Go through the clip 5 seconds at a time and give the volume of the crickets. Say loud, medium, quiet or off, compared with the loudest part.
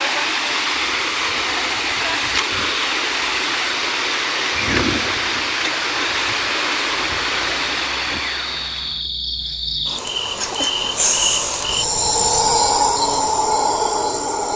quiet, medium, loud.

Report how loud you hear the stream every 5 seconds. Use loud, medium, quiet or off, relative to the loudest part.
loud, loud, off.